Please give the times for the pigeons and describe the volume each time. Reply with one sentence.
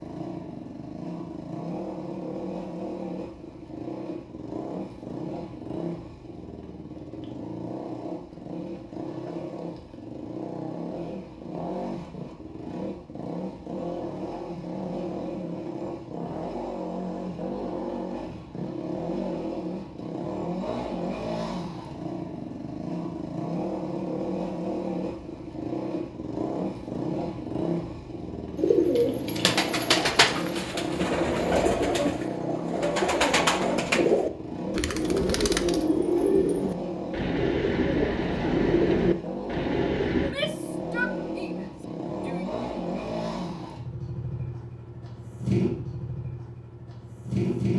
The pigeons can be heard from 28.6 to 40.4 s, at a steady volume.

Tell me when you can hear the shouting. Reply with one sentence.
The shouting can be heard from 40.1 to 42.5 s.